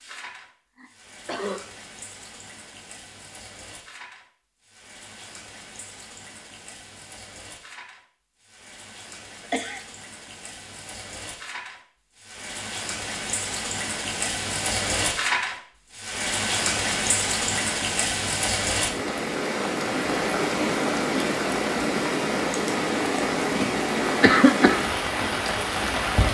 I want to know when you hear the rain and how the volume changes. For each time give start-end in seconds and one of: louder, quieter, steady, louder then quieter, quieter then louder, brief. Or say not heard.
0.0-26.3 louder.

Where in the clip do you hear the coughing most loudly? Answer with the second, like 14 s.
24 s.